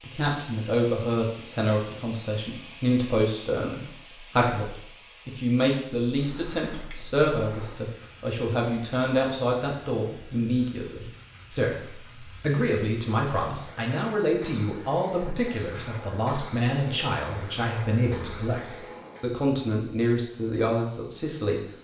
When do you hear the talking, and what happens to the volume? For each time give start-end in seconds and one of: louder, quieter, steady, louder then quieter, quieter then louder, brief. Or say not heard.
0.0-21.6 steady.